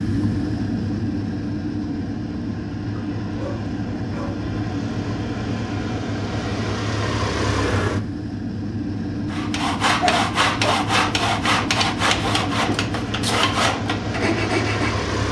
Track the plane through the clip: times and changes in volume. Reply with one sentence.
The plane can be heard from 0.0 to 15.2 s, at a steady volume.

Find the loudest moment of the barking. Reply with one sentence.
The volume of the barking peaks at 10 seconds.